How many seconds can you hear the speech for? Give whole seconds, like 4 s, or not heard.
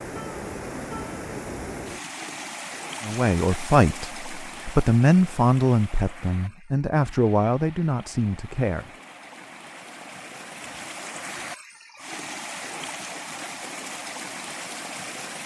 6 s.